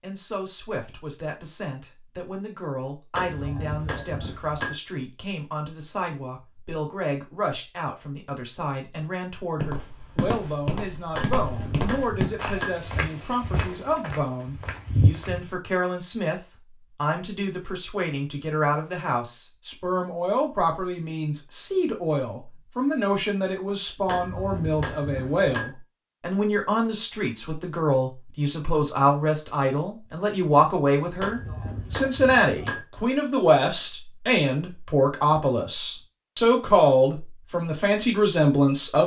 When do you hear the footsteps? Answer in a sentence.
The footsteps can be heard from 9.6 to 15.5 s.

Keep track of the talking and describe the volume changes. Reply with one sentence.
The loudness of the talking goes up.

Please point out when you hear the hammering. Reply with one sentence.
The hammering can be heard from 3.1 to 4.8 s, from 11.2 to 12.8 s, from 24.1 to 25.7 s and from 31.2 to 32.9 s.